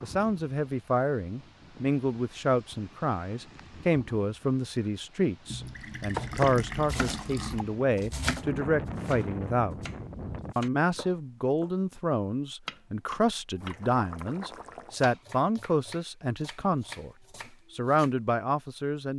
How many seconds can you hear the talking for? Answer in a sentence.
You can hear the talking for 18 seconds altogether.